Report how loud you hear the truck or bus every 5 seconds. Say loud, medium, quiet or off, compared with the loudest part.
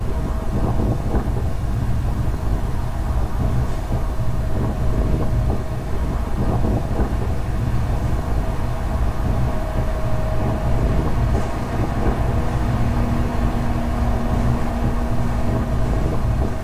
medium, medium, loud, loud.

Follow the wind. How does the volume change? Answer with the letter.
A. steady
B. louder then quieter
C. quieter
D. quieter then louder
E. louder
A.